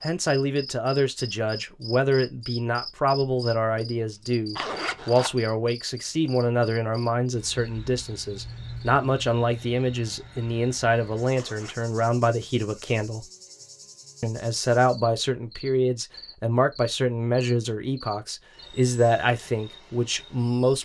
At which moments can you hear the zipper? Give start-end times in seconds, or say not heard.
4.5-5.3, 11.3-11.9.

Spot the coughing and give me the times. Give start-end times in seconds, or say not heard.
not heard.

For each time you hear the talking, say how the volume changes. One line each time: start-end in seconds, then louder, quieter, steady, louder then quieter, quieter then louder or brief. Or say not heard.
0.0-13.2 steady
14.2-20.8 steady.